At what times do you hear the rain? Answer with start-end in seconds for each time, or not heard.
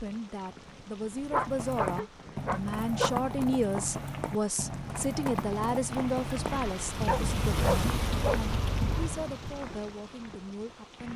0.0-11.1.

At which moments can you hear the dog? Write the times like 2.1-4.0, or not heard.
1.3-3.1, 7.0-9.1.